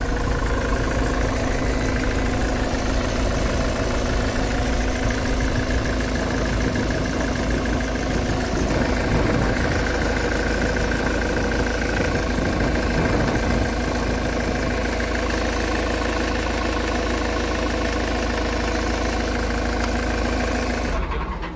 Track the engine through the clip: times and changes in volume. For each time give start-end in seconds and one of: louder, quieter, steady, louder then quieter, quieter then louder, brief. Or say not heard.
0.0-21.5 steady.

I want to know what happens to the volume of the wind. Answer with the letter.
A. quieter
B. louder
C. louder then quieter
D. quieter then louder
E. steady
B.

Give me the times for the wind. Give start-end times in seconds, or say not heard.
0.1-14.9.